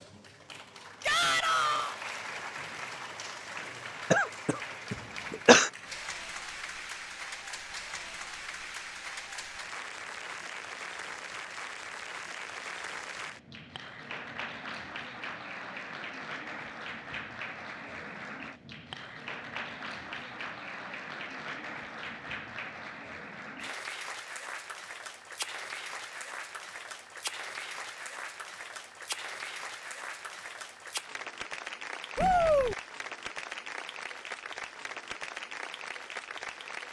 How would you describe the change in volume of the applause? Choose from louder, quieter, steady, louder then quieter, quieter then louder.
steady.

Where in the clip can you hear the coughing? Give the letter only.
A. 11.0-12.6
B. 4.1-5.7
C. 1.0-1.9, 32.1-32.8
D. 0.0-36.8
B.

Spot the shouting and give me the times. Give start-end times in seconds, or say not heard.
1.0-1.9, 32.1-32.8.